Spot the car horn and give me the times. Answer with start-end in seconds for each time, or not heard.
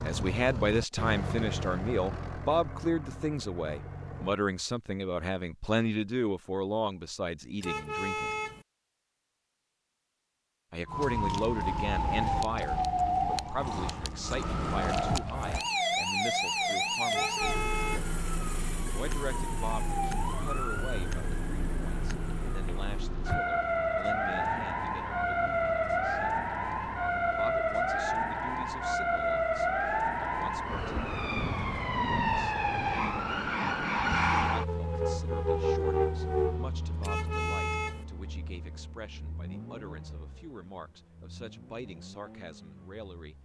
7.6-8.7, 17.1-18.1, 37.0-38.0.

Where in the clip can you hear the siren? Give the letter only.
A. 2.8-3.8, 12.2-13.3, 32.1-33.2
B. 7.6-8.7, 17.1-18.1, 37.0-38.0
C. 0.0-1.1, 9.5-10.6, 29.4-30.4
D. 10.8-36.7
D.